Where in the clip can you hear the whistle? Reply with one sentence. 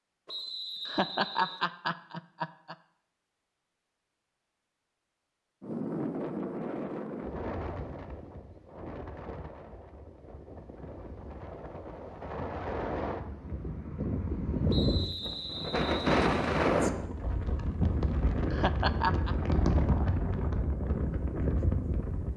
The whistle can be heard from 0.2 to 1.6 s and from 14.7 to 16.7 s.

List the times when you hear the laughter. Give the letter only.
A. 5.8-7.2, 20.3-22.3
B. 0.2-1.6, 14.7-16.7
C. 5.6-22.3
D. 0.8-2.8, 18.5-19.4
D.